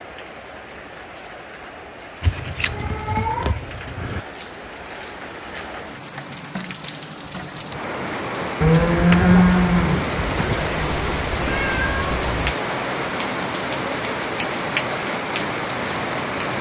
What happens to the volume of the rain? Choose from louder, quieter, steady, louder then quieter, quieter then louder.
louder.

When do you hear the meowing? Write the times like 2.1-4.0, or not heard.
2.2-4.2, 10.6-12.6.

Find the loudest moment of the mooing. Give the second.
9 s.